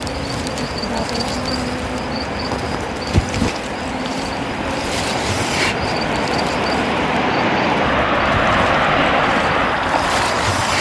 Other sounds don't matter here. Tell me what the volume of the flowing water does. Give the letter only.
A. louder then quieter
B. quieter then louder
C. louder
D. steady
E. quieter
C.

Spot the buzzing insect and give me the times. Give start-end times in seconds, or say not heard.
0.0-10.7.